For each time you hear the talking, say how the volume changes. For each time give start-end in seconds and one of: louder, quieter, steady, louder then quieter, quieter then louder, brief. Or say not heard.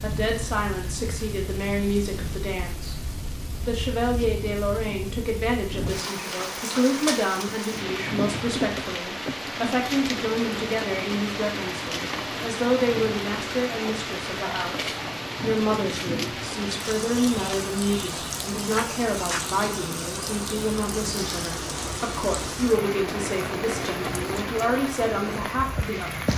0.0-3.0 brief
3.6-26.3 steady.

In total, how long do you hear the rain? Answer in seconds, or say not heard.
26 s.